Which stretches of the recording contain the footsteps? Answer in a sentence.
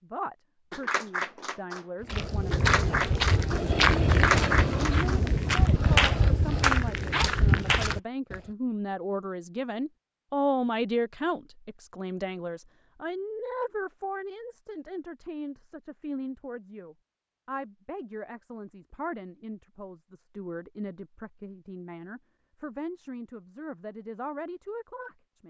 You can hear the footsteps from 2.0 to 8.5 s.